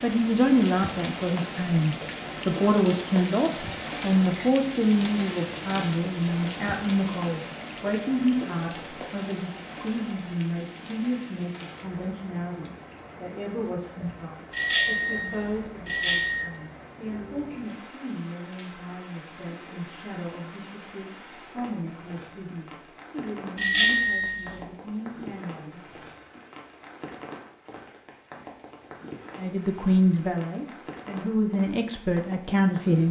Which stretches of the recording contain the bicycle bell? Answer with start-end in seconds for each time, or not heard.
3.5-4.5, 14.5-16.4, 23.6-24.6.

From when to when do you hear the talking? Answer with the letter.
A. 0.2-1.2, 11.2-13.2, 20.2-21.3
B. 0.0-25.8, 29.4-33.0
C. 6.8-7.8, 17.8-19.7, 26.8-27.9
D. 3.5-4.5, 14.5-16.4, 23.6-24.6
B.